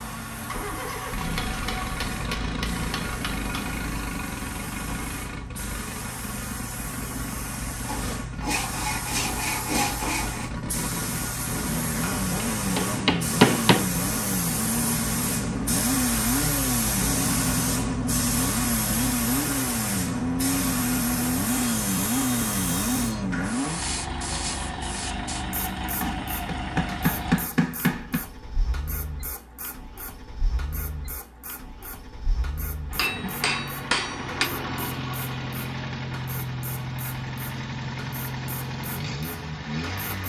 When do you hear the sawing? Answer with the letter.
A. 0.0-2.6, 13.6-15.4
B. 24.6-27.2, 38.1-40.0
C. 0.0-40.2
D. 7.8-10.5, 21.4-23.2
D.